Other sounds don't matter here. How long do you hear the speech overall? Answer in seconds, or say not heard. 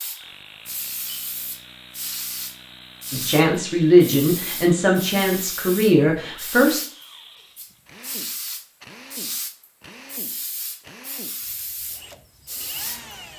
4 s.